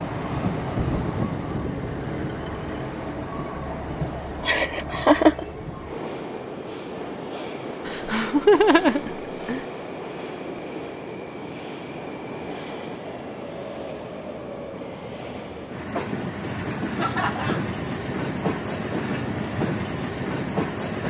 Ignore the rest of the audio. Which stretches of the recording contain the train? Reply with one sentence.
You can hear the train from 0.0 to 21.0 s.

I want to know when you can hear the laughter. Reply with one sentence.
You can hear the laughter from 4.4 to 5.5 s, from 7.8 to 9.7 s and from 16.9 to 17.7 s.